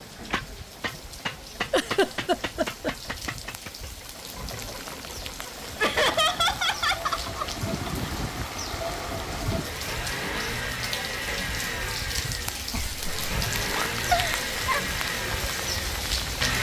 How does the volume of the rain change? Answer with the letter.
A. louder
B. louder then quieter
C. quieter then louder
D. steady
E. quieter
A.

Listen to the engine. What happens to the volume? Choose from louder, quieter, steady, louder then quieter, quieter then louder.
quieter then louder.